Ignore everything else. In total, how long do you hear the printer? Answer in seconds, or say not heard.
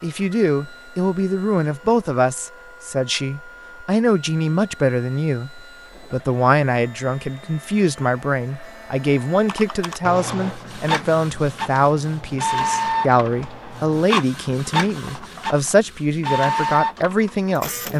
18 s.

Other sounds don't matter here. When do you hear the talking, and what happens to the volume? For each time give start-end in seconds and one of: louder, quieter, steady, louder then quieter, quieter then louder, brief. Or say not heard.
0.0-17.9 steady.